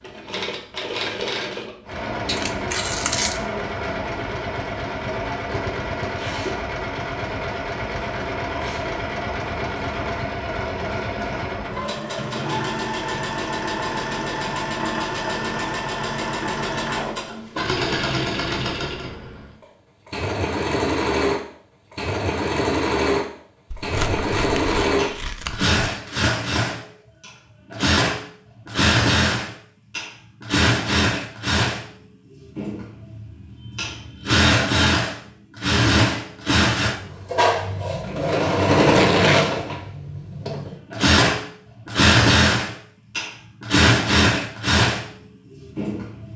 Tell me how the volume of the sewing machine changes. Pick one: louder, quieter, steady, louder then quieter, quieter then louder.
louder.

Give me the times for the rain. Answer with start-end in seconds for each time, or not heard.
not heard.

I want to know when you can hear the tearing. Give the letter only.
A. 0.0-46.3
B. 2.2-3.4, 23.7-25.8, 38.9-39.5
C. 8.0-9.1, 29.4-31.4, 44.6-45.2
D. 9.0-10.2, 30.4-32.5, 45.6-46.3
B.